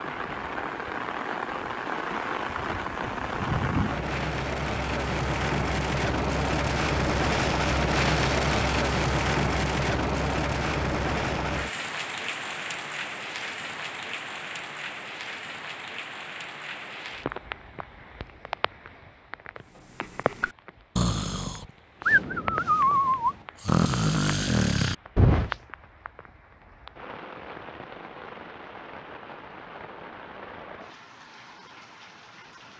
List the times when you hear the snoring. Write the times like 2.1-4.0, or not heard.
20.0-25.6.